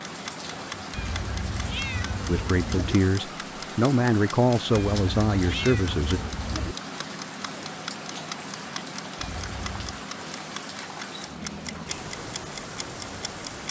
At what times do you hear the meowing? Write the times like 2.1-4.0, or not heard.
0.9-3.0, 4.7-6.8, 9.2-10.0.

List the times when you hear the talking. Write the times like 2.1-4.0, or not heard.
2.2-6.2.